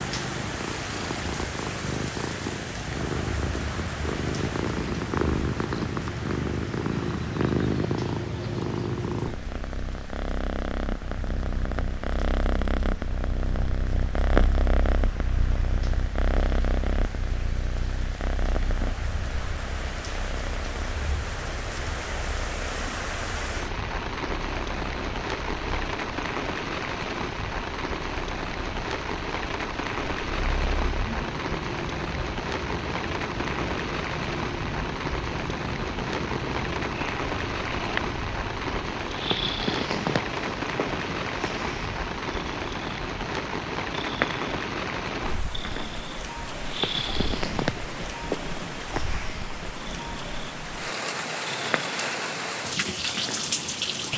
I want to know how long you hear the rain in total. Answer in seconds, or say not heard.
54 s.